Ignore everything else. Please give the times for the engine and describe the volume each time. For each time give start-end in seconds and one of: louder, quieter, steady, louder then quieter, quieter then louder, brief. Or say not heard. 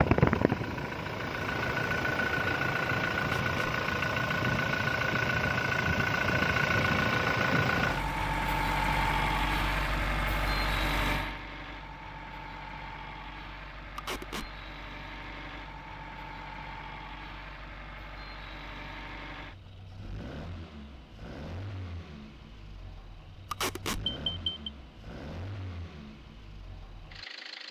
0.0-27.6 quieter.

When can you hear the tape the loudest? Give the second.
24 s.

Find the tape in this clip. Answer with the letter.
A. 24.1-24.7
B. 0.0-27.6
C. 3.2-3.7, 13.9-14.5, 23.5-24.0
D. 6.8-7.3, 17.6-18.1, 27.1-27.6
C.